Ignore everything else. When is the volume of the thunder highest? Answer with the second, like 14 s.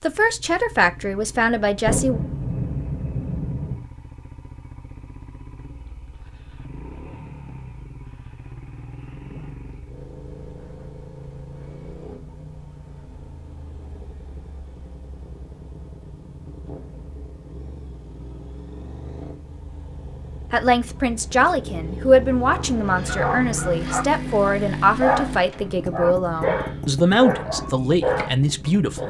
2 s.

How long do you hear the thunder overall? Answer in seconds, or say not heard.
2 s.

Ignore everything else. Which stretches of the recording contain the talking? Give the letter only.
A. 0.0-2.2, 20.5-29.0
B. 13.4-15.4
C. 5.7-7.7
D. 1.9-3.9
A.